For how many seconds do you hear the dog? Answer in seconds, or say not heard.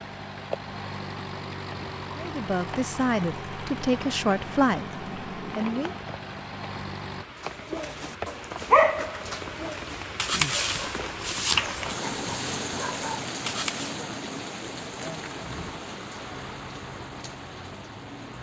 6 s.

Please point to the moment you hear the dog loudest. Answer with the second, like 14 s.
9 s.